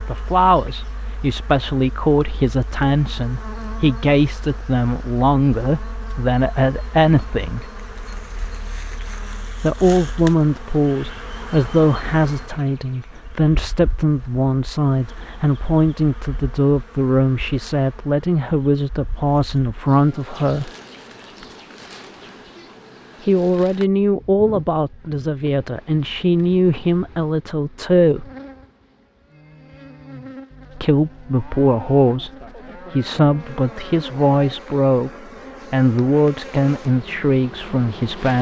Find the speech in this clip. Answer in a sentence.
You can hear the speech from 0.1 to 7.7 s, from 9.6 to 20.7 s, from 23.2 to 28.3 s, from 30.8 to 32.3 s, from 32.9 to 35.1 s and from 35.7 to 38.3 s.